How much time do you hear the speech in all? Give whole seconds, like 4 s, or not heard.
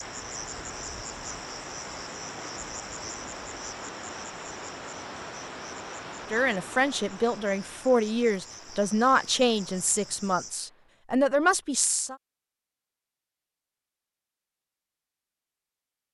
6 s.